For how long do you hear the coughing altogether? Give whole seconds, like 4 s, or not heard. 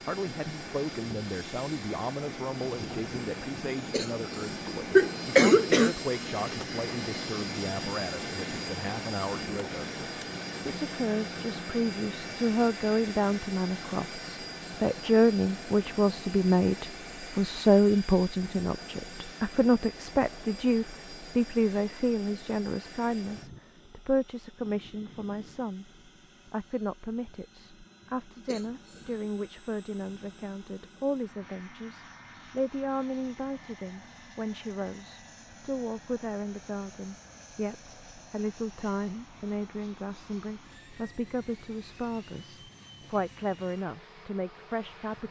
3 s.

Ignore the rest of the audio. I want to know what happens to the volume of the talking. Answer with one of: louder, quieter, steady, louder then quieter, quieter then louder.
louder then quieter.